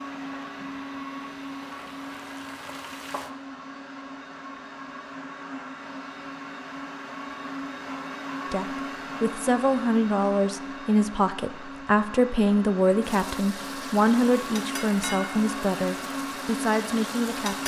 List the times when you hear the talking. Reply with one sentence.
The talking can be heard from 8.5 to 17.6 s.